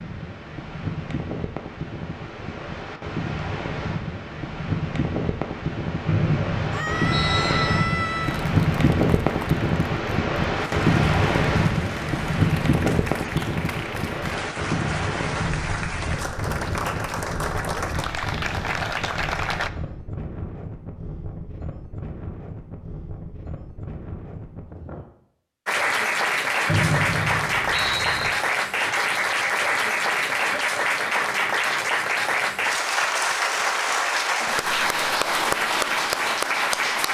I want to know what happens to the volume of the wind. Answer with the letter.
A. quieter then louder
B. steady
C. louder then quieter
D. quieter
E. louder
C.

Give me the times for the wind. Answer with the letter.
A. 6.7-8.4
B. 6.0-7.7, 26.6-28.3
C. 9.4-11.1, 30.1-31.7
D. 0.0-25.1
D.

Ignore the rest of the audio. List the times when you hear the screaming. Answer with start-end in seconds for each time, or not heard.
6.7-8.4.